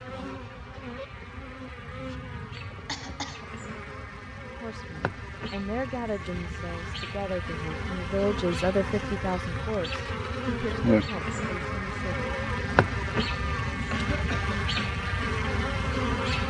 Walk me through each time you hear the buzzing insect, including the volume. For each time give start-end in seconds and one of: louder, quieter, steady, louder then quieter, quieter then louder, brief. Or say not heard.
0.0-16.4 louder.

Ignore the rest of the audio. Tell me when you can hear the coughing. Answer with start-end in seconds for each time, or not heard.
2.9-3.5, 13.9-14.9.